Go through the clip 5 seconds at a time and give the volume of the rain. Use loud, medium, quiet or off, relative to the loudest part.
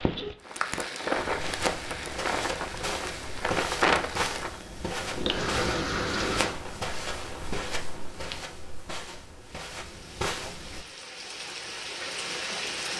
loud, loud, medium.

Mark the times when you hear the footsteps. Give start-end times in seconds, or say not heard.
1.1-10.8.